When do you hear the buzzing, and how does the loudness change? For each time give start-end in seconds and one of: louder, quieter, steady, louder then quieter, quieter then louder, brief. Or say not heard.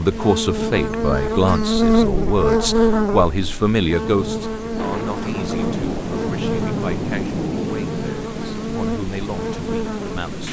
0.0-10.2 quieter.